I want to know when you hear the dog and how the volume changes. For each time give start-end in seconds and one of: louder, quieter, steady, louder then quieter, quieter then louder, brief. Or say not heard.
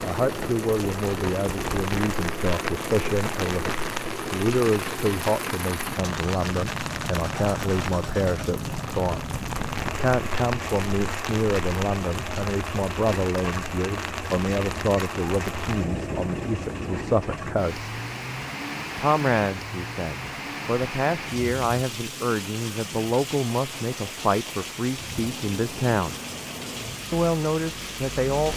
not heard.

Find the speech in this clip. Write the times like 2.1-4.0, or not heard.
0.0-9.2, 9.8-17.9, 18.9-26.1, 27.1-28.5.